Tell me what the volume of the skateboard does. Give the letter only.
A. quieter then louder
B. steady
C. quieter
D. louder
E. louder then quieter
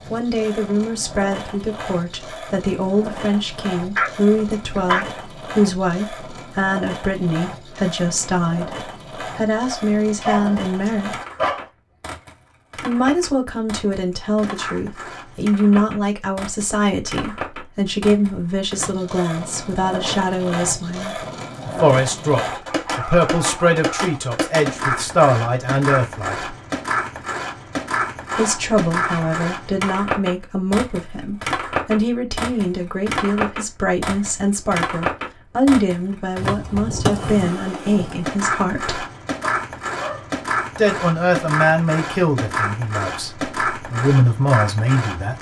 D.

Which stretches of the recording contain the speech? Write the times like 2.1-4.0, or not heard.
0.1-11.2, 12.8-26.6, 28.4-39.0, 40.8-45.3.